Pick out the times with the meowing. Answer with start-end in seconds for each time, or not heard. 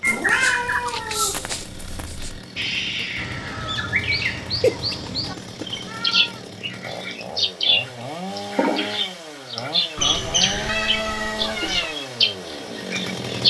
0.1-2.3, 4.6-6.4, 9.9-11.9.